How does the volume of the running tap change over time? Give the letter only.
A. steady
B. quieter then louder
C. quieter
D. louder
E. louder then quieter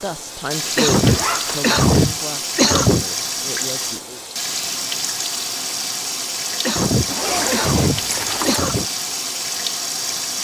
A.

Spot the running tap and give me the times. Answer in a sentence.
The running tap can be heard from 0.0 to 10.4 s.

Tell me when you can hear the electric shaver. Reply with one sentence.
You can't hear the electric shaver here.